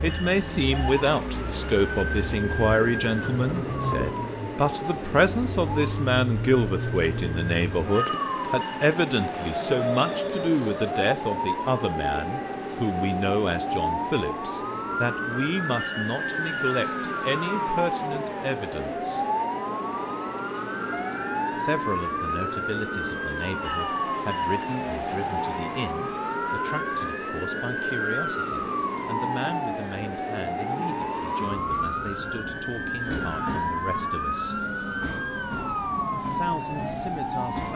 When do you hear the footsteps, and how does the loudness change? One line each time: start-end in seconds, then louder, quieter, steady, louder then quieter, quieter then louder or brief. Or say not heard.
not heard.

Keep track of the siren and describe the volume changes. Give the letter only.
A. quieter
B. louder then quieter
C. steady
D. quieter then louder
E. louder
C.